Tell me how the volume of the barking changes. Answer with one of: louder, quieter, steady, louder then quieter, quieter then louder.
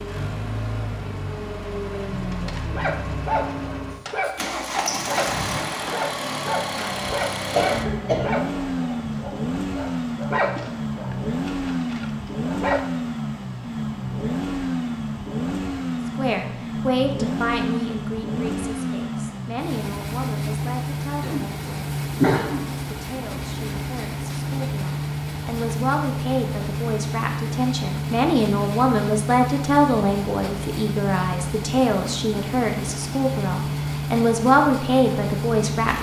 quieter.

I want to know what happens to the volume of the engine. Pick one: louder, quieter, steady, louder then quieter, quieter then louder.
steady.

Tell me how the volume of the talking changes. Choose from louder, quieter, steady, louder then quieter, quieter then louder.
quieter then louder.